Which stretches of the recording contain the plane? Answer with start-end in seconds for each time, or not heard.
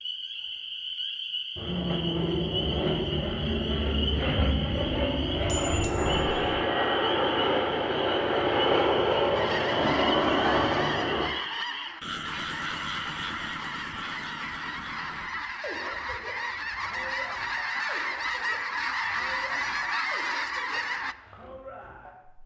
1.6-11.3.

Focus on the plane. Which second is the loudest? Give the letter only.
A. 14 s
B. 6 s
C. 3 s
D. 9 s
D.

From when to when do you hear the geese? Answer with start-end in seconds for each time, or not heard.
9.3-21.1.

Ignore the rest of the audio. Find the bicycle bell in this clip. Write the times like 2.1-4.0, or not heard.
5.3-6.7.